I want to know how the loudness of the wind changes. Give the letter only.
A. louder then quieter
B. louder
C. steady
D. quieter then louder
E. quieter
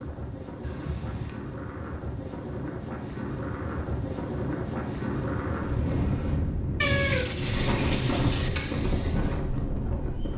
B.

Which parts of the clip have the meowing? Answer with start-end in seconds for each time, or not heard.
0.6-1.4, 6.8-8.5.